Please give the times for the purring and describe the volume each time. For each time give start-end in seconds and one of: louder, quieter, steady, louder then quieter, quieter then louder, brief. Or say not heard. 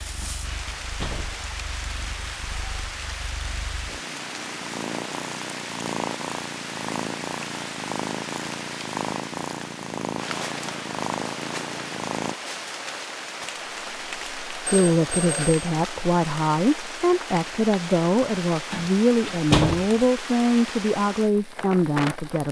0.0-12.3 louder.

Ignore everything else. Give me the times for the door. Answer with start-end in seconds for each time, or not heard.
0.2-1.4, 18.7-19.9.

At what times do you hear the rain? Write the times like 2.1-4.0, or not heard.
0.0-22.4.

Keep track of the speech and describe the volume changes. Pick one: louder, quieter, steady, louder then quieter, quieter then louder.
steady.